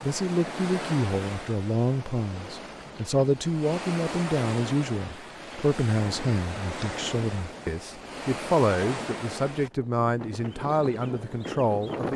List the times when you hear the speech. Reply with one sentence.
You can hear the speech from 0.0 to 12.1 s.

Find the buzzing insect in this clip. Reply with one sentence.
You can't hear the buzzing insect here.